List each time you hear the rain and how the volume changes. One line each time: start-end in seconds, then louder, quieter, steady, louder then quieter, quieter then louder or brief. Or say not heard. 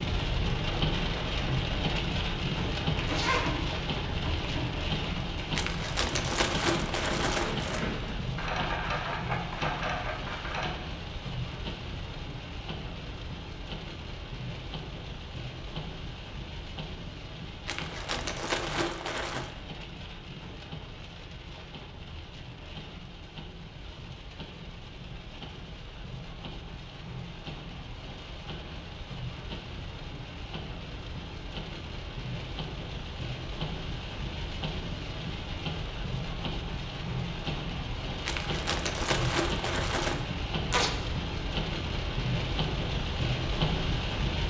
0.0-44.4 quieter then louder.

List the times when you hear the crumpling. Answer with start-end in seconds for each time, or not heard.
5.5-7.8, 17.6-19.5, 38.2-40.2.